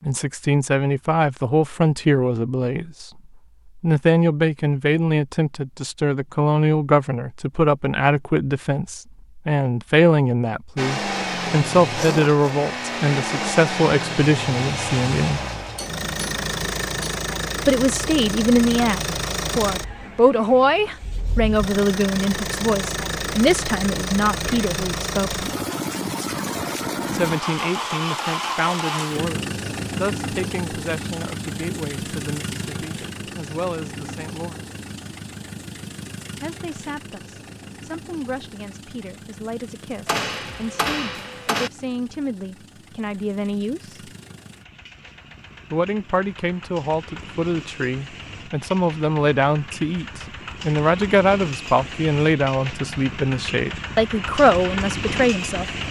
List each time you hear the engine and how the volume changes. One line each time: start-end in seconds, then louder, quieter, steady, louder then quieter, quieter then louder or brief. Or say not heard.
10.8-55.8 quieter then louder.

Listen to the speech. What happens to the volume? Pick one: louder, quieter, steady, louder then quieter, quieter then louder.
quieter then louder.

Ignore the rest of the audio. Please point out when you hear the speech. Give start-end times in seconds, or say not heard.
0.0-15.4, 17.6-25.4, 27.1-34.6, 36.4-44.0, 45.7-55.6.